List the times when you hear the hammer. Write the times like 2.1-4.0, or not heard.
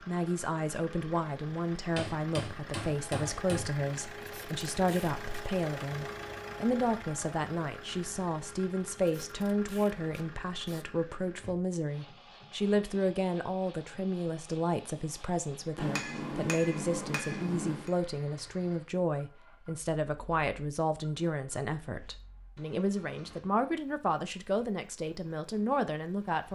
1.9-3.8, 15.8-17.9.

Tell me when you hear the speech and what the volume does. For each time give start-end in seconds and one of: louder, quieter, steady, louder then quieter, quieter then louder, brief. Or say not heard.
0.1-26.5 steady.